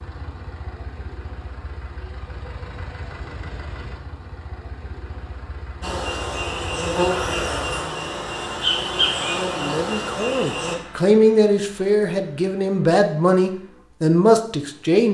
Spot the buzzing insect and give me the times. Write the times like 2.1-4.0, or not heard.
5.8-10.8.